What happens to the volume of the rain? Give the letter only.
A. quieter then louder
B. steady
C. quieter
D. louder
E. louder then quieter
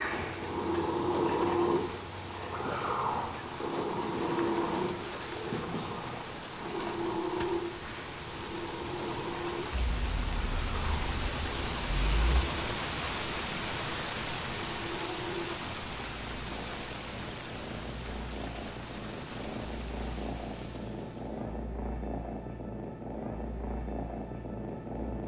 E.